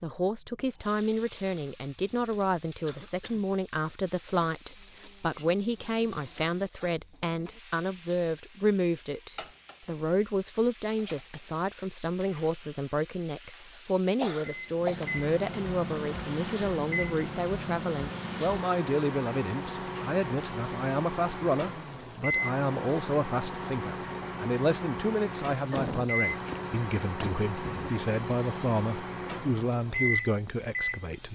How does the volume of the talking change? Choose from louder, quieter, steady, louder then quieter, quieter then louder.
steady.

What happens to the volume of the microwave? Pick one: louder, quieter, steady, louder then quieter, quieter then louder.
steady.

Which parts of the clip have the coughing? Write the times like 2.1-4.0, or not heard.
2.9-3.5, 13.7-15.1, 25.7-27.9.